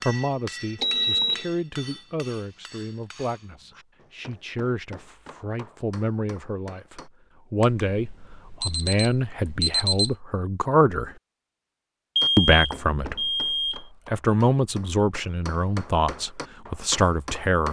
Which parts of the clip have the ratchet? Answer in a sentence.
The ratchet can't be heard in this clip.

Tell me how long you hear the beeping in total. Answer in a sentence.
The beeping can be heard for 5 seconds in total.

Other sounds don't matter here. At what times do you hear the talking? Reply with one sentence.
The talking can be heard from 0.1 to 11.1 s and from 12.3 to 17.6 s.